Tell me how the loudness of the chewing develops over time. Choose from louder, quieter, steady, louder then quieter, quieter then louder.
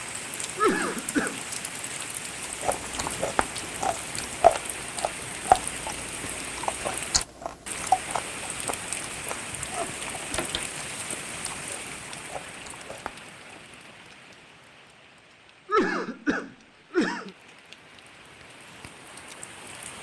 quieter.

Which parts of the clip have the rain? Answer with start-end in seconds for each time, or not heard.
0.0-19.9.